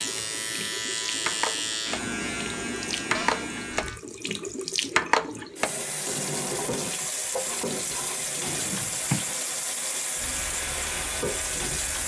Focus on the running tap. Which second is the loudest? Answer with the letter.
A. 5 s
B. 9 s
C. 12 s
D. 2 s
A.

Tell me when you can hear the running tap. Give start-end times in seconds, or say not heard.
0.0-12.0.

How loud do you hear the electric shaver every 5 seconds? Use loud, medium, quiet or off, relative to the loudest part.
loud, off, medium.